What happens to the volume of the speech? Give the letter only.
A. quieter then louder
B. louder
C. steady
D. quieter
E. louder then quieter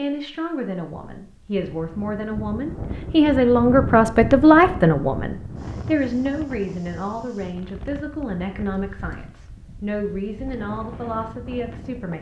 E.